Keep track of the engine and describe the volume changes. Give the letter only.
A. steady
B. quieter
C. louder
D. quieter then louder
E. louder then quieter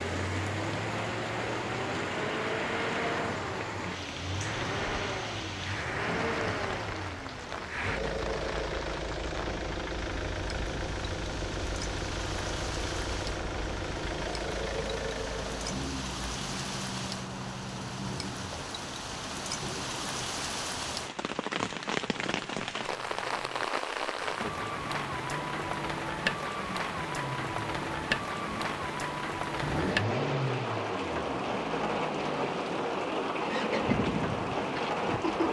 D.